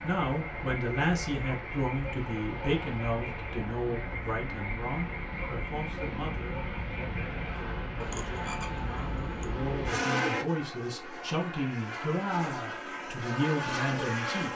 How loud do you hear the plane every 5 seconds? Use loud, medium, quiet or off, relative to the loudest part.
medium, loud, loud.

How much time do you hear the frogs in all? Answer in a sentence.
You can hear the frogs for 9 seconds altogether.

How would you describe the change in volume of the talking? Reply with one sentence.
The volume of the talking goes down, then up.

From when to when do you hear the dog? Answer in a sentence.
The dog can't be heard in this clip.